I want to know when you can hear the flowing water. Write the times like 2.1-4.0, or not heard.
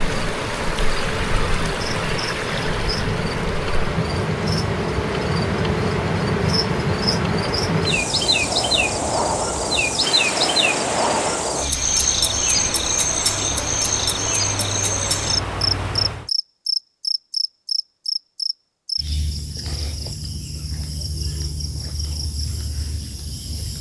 0.0-16.3.